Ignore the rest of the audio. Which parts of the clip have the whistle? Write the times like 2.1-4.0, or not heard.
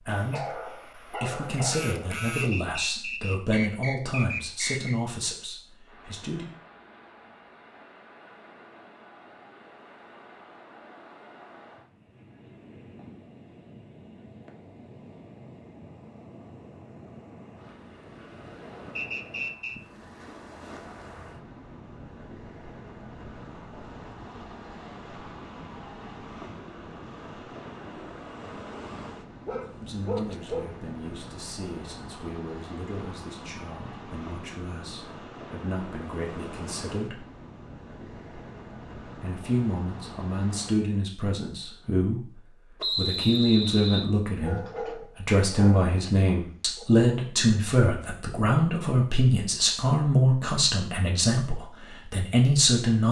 2.4-5.0, 18.9-19.8, 42.8-44.1.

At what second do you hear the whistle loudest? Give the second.
43 s.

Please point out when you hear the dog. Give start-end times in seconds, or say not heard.
0.1-2.5, 29.4-30.8, 44.2-46.9.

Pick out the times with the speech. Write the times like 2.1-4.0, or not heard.
0.0-6.5, 29.8-37.2, 39.1-53.0.